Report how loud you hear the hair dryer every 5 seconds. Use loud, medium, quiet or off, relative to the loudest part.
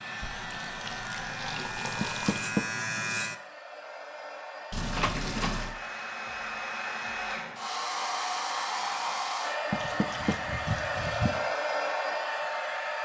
medium, loud, loud.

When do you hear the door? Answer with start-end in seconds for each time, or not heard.
2.0-2.6, 4.9-5.6, 9.7-10.4.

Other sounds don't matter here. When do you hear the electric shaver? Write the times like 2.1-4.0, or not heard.
0.0-3.4.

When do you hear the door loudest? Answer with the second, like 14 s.
2 s.